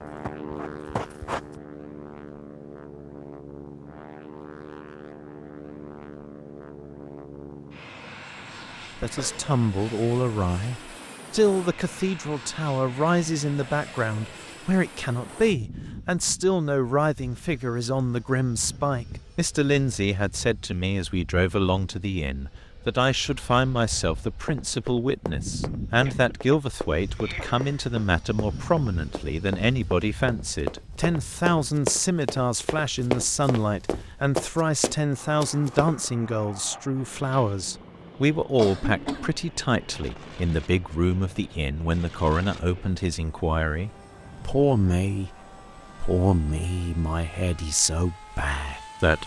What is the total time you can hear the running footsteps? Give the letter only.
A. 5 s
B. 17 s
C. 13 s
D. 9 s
C.